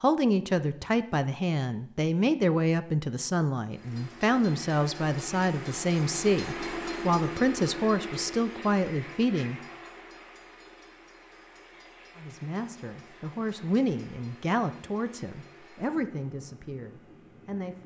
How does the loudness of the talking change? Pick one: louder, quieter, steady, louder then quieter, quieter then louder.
quieter.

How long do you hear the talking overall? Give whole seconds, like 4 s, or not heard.
15 s.